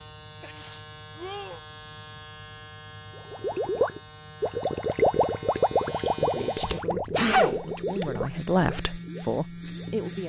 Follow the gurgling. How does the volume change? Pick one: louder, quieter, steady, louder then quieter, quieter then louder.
quieter.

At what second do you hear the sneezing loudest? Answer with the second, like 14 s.
7 s.